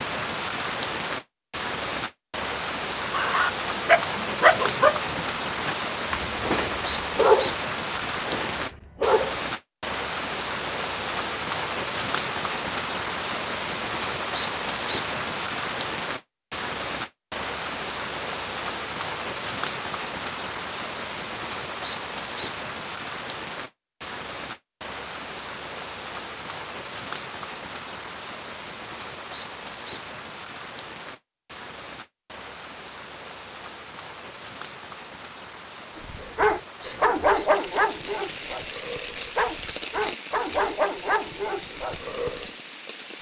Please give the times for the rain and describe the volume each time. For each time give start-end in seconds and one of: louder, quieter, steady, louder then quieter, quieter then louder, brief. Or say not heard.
0.0-43.1 quieter.